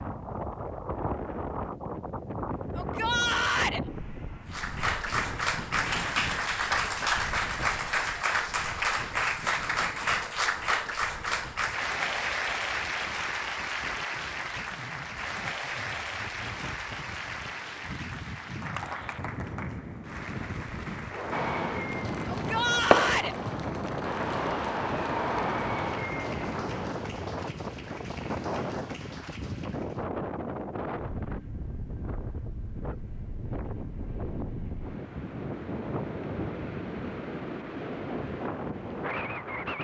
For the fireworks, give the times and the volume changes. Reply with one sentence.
You can hear the fireworks from 21.3 to 27.1 s, getting louder then quieter.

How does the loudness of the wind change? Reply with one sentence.
The volume of the wind goes down, then up.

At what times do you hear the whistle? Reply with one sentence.
You can't hear the whistle here.